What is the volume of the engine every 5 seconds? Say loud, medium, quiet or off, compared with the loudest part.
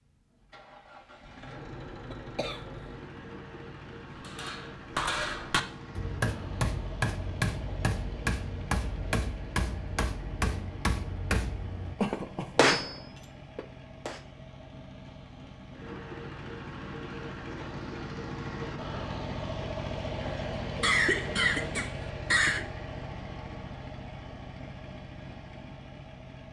medium, medium, medium, loud, loud, medium.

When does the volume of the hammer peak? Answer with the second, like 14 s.
13 s.